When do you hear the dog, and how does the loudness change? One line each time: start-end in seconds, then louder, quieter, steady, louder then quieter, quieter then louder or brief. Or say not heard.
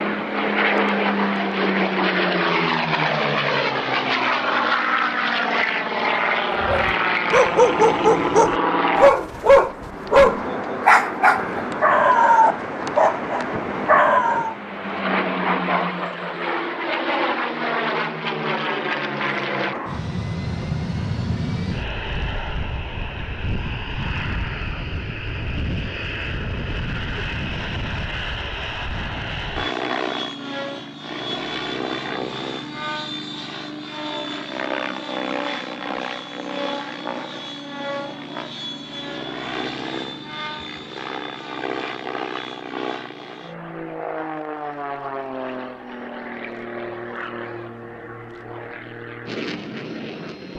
6.6-14.6 steady.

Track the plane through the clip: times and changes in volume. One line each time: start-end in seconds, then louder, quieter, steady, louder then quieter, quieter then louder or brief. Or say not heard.
0.0-50.5 quieter.